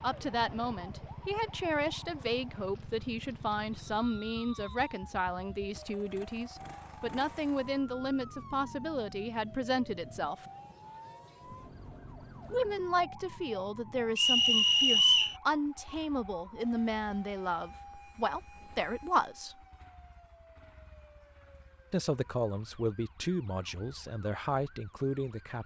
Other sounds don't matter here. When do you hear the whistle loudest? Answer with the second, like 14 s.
15 s.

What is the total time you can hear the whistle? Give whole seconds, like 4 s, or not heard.
2 s.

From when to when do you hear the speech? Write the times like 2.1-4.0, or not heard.
0.0-10.4, 12.5-19.6, 21.9-25.6.